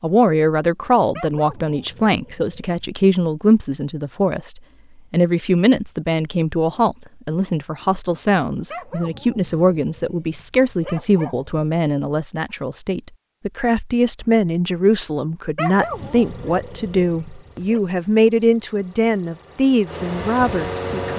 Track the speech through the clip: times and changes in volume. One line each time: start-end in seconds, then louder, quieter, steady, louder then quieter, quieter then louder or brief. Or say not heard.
0.0-21.1 steady.